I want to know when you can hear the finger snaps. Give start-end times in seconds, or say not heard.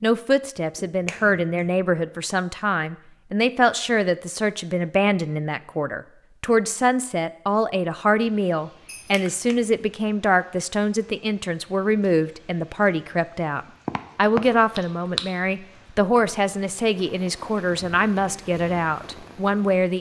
0.8-1.8, 8.8-9.6, 13.8-15.3.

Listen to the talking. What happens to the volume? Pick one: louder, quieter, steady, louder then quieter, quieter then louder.
steady.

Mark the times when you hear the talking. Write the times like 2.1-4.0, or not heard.
0.0-19.9.